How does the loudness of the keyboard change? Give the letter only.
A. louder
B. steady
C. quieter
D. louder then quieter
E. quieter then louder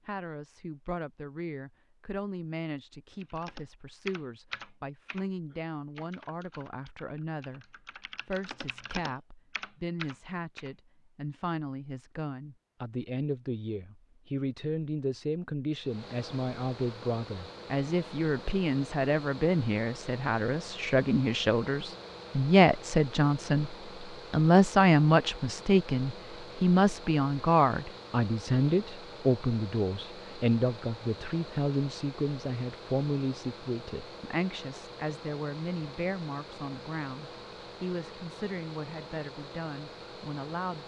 E.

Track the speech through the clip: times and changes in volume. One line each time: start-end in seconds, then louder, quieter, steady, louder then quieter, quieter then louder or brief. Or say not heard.
0.1-40.8 louder then quieter.